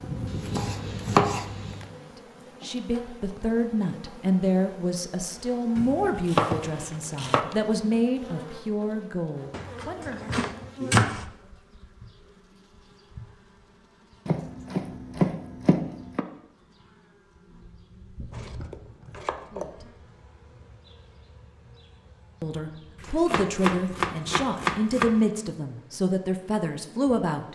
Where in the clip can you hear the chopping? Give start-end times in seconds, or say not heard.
0.2-1.9, 5.8-7.4, 9.5-11.2, 14.2-16.2, 18.3-19.7, 23.0-25.1.